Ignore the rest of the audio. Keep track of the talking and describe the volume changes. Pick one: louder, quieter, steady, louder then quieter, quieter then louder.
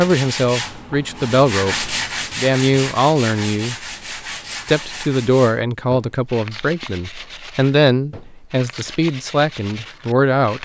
steady.